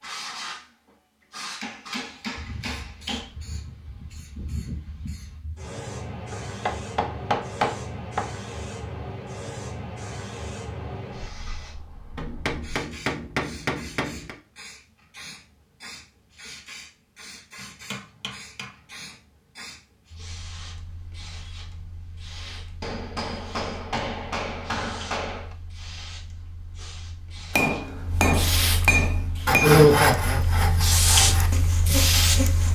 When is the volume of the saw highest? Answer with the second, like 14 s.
30 s.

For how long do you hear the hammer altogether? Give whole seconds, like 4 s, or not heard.
12 s.